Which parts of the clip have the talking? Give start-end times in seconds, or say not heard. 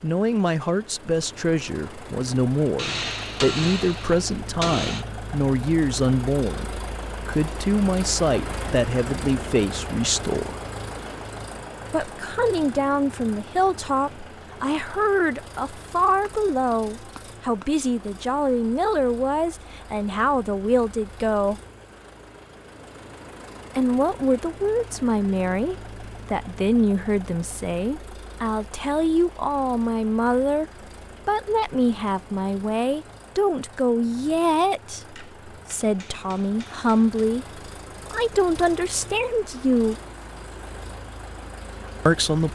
0.0-10.6, 11.9-21.6, 23.8-30.6, 31.2-40.0, 42.0-42.5.